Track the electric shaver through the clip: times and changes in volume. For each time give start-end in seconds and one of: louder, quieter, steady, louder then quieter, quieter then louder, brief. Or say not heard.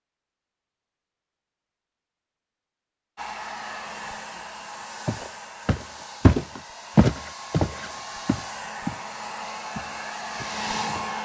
not heard.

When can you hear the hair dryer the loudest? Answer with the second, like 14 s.
11 s.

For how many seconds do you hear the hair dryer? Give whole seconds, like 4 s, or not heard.
8 s.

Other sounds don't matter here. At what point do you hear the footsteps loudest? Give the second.
7 s.